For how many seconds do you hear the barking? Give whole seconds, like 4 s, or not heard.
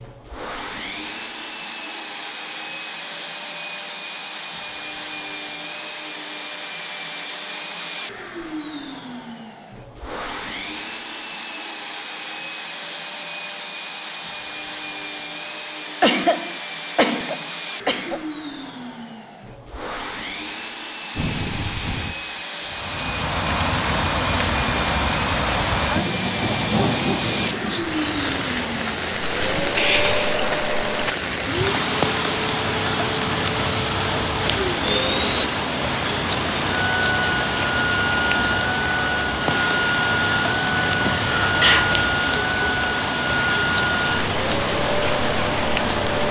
not heard.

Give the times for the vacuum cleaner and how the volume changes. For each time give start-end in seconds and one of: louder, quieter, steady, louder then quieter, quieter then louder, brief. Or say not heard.
0.0-46.2 louder.